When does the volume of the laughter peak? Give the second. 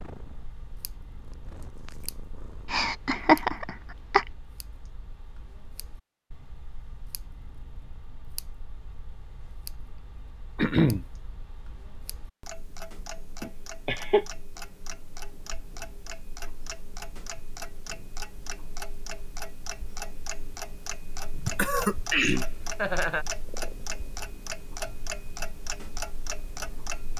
3 s.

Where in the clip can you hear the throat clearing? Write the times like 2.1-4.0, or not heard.
10.6-11.1, 21.4-22.4.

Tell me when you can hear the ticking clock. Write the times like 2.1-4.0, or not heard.
0.0-27.1.